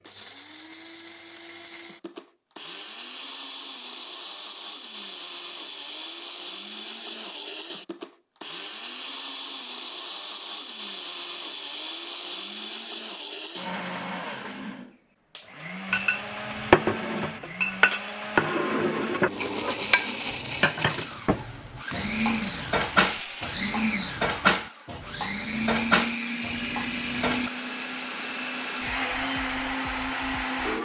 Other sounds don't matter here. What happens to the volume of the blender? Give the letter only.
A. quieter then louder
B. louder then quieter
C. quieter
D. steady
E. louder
E.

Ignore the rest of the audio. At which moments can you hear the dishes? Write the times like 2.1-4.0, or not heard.
15.9-27.5.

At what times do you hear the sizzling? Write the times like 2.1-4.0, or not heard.
21.6-23.7.